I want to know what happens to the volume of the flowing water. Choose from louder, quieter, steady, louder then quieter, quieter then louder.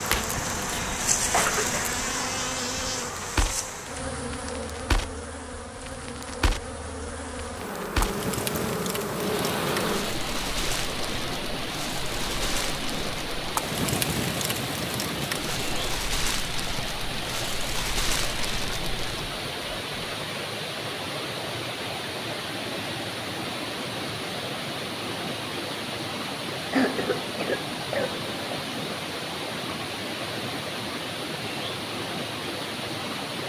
steady.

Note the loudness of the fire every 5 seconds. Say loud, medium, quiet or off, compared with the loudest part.
loud, loud, loud, loud, off, off, off.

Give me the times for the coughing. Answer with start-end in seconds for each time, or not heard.
1.3-1.9, 26.7-28.6.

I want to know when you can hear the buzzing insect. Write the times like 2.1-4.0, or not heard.
0.0-10.2.